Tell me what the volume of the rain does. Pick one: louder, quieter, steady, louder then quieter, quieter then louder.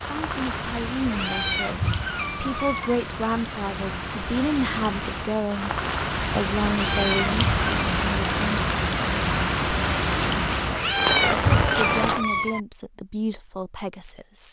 louder.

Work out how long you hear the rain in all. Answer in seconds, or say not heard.
12 s.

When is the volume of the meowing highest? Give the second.
11 s.